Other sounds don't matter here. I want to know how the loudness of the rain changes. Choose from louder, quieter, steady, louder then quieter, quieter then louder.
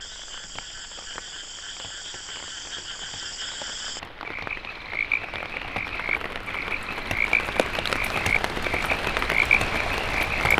louder.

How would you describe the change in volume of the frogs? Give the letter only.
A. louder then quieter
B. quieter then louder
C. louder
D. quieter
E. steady
C.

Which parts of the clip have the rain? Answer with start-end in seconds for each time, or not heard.
0.0-10.5.